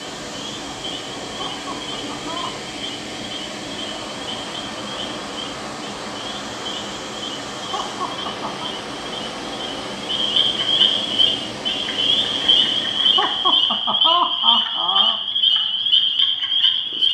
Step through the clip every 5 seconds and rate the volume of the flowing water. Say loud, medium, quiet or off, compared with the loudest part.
loud, loud, loud, off.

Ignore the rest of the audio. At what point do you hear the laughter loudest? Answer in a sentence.
The volume of the laughter peaks at 14 seconds.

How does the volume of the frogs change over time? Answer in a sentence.
The loudness of the frogs goes up.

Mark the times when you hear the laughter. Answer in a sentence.
The laughter can be heard from 1.3 to 2.5 s, from 7.5 to 8.8 s and from 12.9 to 15.2 s.